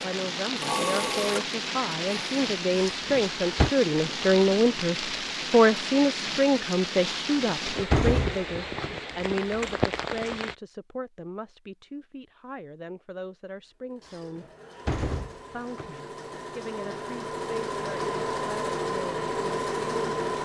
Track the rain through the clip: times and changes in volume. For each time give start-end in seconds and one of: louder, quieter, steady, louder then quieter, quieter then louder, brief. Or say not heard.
0.0-10.6 steady.